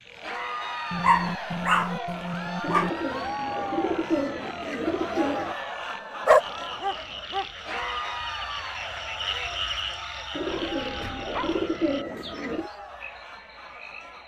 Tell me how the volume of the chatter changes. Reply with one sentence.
The loudness of the chatter goes down.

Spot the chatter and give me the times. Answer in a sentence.
You can hear the chatter from 0.1 to 14.2 s.